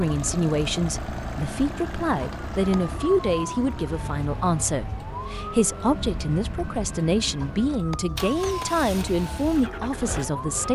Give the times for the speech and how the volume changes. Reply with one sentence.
You can hear the speech from 0.0 to 10.7 s, at a steady volume.